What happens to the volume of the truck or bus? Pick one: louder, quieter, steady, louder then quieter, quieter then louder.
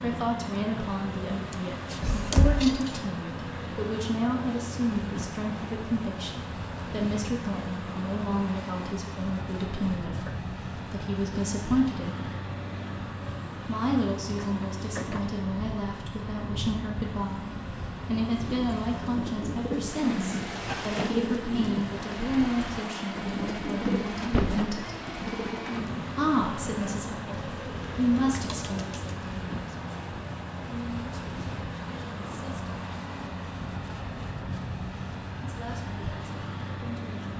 steady.